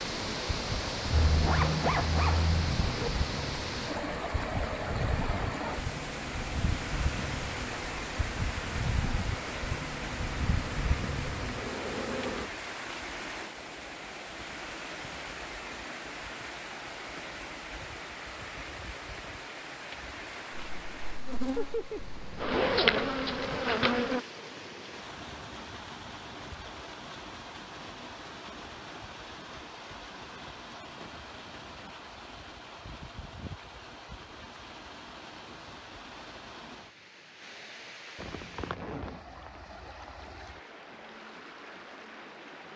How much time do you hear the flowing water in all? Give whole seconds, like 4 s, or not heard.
43 s.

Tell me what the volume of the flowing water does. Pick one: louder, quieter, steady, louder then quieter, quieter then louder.
quieter.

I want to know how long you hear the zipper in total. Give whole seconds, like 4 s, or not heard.
5 s.